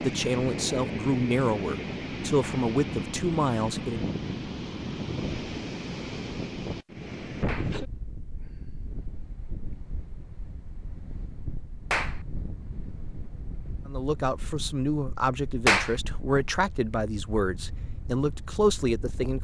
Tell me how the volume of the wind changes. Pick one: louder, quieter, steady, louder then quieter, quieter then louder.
quieter.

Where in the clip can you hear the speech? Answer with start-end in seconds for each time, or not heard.
0.0-4.0, 13.8-19.4.